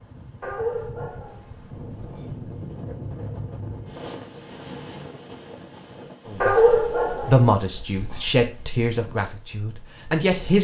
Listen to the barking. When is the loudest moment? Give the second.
7 s.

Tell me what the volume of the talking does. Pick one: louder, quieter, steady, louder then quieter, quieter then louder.
quieter.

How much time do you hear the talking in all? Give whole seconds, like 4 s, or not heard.
4 s.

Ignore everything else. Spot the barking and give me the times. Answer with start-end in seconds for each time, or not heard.
0.4-3.0, 6.4-8.3.